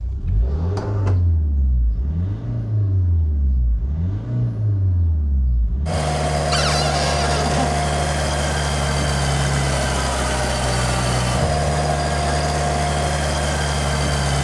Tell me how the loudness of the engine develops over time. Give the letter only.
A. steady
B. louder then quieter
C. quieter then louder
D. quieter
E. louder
E.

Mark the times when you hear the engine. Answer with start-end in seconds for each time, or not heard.
0.0-14.3.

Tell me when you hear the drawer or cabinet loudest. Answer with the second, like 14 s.
7 s.